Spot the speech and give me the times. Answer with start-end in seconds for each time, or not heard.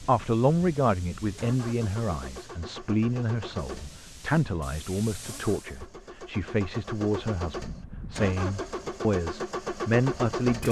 0.0-10.6.